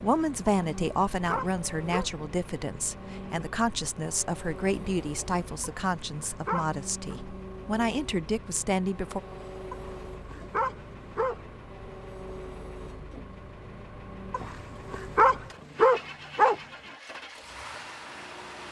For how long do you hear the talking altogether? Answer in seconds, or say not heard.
9 s.